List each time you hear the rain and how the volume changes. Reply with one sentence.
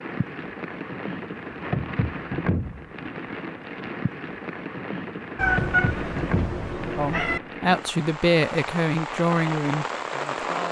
You can hear the rain from 0.0 to 10.6 s, at a steady volume.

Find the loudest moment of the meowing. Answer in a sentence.
The volume of the meowing peaks at 6 seconds.